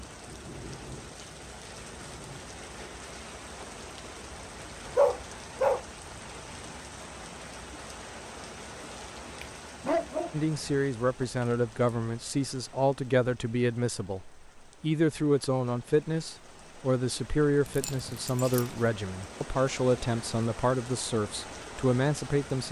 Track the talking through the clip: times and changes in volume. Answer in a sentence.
You can hear the talking from 10.3 to 22.6 s, at a steady volume.